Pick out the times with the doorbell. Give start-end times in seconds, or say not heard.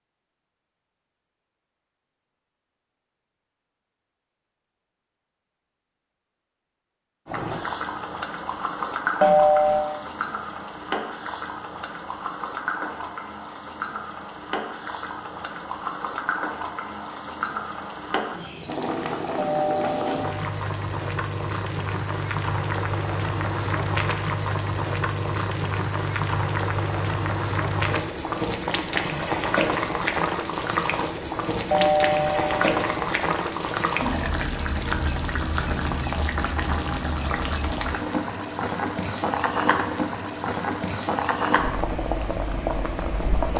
9.2-9.8, 19.4-20.4, 31.7-32.8.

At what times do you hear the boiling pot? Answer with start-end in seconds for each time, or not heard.
7.2-43.5.